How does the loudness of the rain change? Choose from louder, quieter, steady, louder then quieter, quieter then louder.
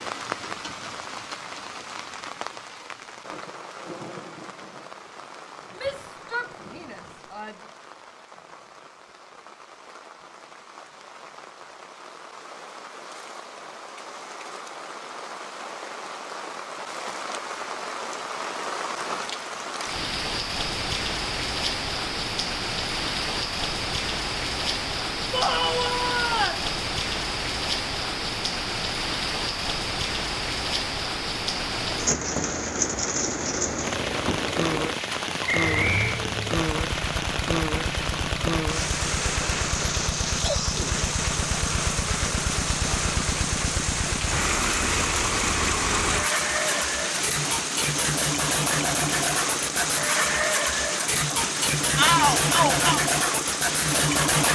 louder.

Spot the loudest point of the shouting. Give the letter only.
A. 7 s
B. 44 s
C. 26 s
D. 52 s
D.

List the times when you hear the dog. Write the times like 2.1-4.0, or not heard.
not heard.